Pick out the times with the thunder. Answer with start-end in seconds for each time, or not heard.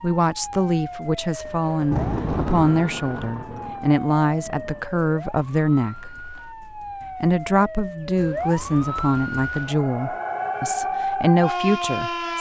1.4-4.8.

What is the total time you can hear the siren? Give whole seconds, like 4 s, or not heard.
12 s.